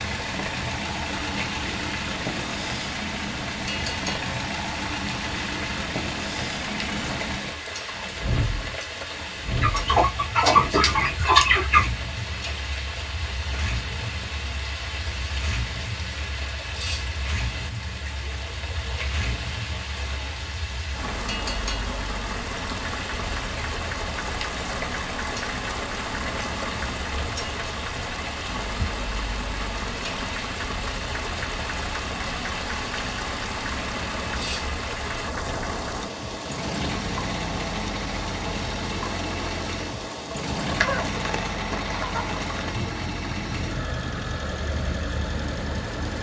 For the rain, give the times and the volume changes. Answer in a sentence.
You can hear the rain from 0.0 to 46.1 s, at a steady volume.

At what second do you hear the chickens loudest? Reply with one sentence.
The loudest moment of the chickens is at 11 seconds.